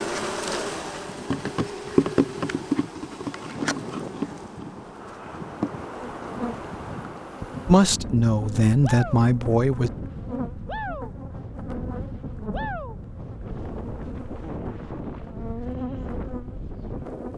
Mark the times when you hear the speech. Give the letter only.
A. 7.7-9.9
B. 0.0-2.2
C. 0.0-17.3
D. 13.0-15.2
A.